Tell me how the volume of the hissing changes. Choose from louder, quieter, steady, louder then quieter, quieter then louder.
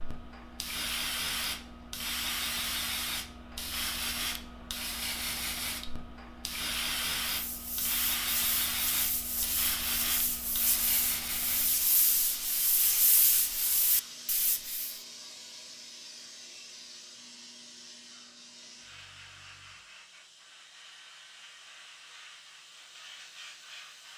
quieter.